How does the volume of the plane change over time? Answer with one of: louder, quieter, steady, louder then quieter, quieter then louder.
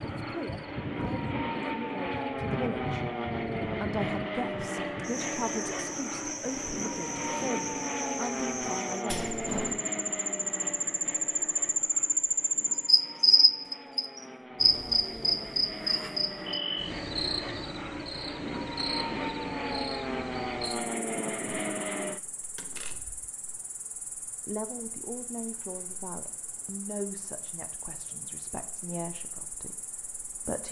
quieter then louder.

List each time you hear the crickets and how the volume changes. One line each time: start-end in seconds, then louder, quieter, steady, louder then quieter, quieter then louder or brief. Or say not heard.
0.0-30.6 louder then quieter.